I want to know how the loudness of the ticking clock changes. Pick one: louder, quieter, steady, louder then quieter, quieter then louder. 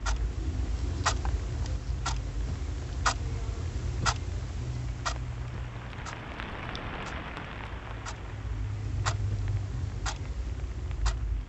quieter then louder.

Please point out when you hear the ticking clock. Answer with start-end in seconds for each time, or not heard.
0.0-11.4.